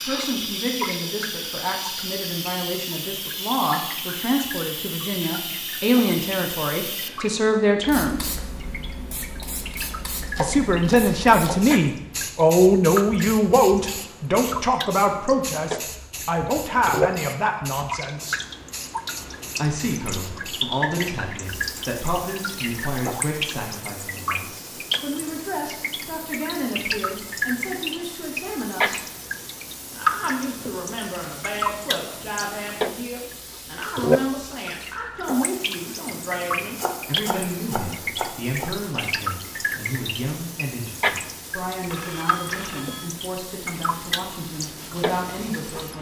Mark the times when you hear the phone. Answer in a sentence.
You can hear the phone from 41.9 to 43.1 s.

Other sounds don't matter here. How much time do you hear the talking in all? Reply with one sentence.
You can hear the talking for 42 seconds altogether.